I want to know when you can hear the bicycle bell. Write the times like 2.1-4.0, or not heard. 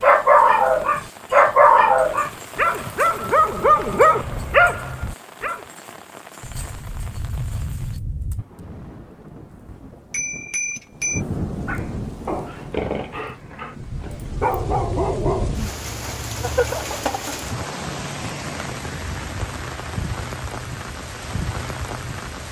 10.1-11.2.